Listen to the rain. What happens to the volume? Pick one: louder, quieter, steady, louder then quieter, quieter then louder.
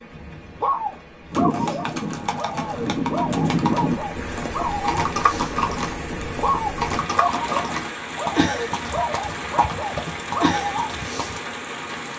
louder.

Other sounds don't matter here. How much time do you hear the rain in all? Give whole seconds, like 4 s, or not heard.
12 s.